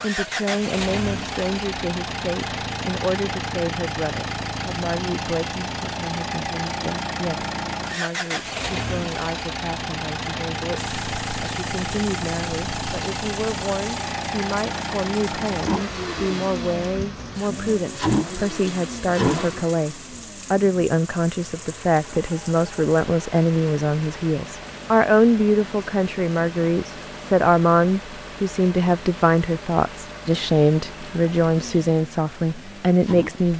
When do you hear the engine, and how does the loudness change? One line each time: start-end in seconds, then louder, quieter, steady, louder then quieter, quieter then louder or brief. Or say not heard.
0.0-33.5 quieter.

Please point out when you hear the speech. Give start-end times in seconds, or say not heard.
0.0-33.5.